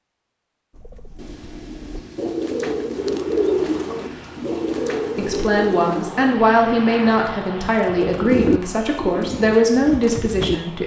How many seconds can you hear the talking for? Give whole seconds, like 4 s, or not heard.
6 s.